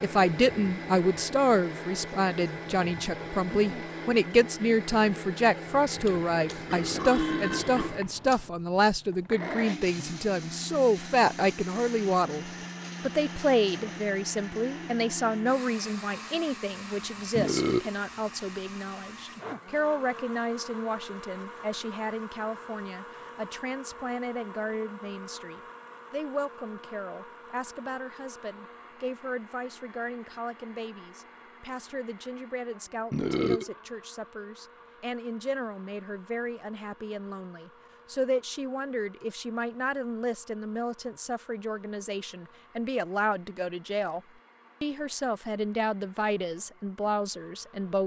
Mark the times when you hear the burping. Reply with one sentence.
You can hear the burping from 6.0 to 8.5 s, from 17.4 to 17.9 s and from 33.1 to 33.7 s.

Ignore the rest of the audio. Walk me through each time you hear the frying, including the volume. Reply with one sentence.
The frying can't be heard in this clip.